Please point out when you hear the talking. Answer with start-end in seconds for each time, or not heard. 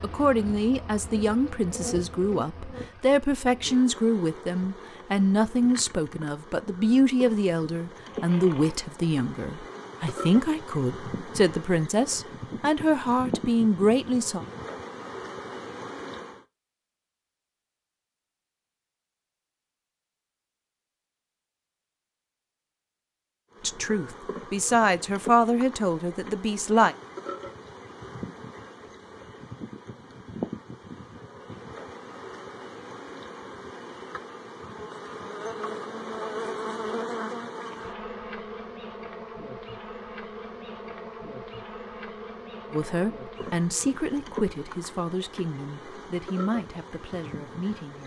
0.0-14.4, 23.6-26.9, 42.7-48.0.